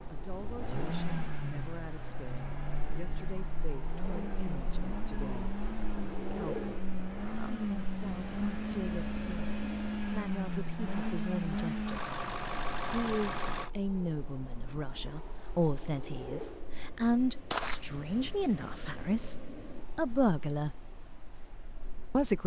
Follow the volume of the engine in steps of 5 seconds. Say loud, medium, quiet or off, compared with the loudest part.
medium, loud, loud, off, off.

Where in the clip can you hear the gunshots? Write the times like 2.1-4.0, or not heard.
17.1-17.9.